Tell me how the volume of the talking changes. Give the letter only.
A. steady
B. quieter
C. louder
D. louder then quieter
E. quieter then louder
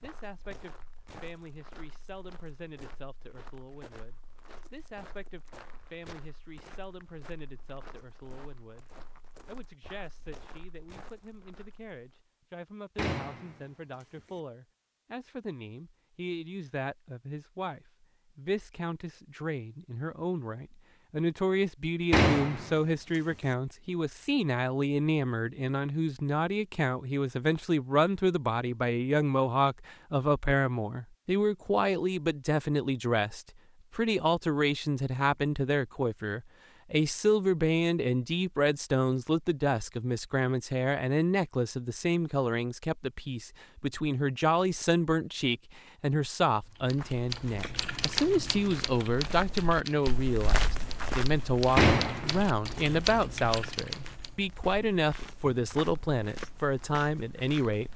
C.